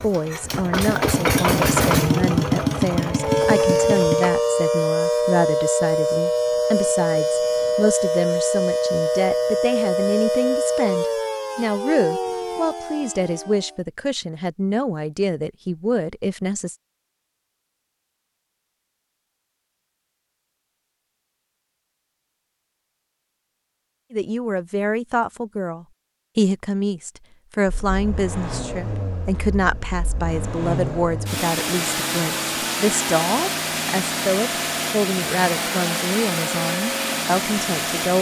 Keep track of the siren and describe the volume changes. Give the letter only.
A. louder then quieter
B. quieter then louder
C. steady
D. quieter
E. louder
A.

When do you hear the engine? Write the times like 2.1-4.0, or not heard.
0.0-4.3, 27.6-38.1.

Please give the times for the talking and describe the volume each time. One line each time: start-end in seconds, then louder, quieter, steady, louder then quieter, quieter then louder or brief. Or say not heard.
0.0-16.8 steady
24.1-38.1 steady.